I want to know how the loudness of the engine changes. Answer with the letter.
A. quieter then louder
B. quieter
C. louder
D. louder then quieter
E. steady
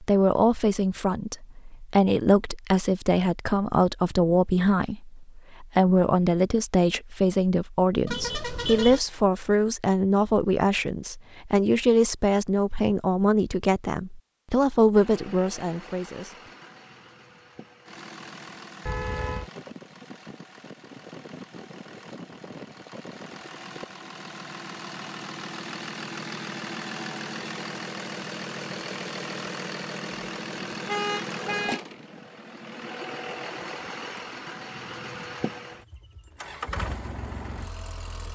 C.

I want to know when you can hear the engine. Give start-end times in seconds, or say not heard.
14.9-38.3.